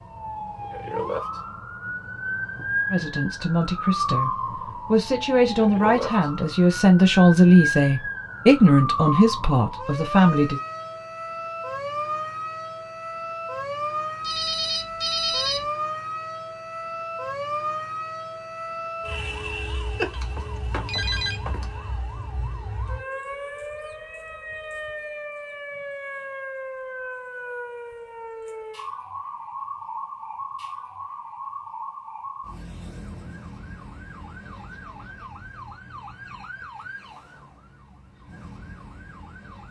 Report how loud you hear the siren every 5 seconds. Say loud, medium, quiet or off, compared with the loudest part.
loud, loud, loud, loud, medium, medium, medium, quiet.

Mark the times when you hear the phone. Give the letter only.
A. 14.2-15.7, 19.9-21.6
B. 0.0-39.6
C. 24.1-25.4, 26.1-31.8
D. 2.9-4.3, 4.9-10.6
A.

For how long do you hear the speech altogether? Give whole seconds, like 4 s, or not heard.
7 s.